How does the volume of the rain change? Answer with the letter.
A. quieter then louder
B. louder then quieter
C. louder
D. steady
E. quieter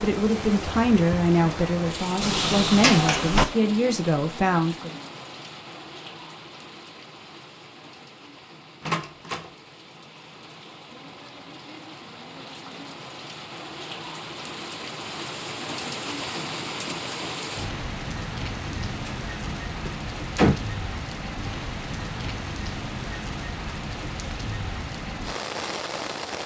A.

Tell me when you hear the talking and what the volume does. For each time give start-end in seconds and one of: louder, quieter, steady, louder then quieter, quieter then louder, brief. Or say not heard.
0.0-4.9 steady.